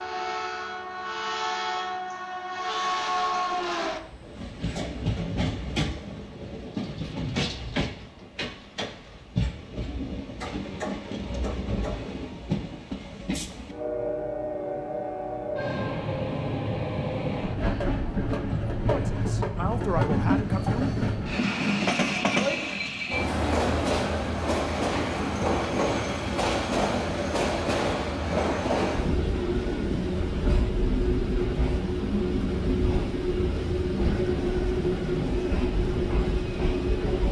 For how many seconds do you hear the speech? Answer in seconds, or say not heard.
2 s.